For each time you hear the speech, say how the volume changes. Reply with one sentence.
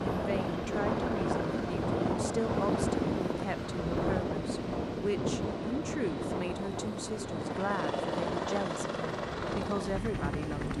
You can hear the speech from 0.0 to 10.7 s, at a steady volume.